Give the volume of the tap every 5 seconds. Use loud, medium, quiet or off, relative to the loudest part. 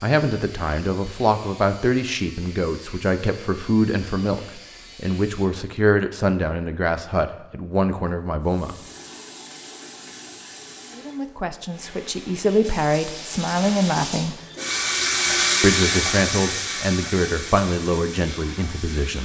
off, quiet, medium, loud.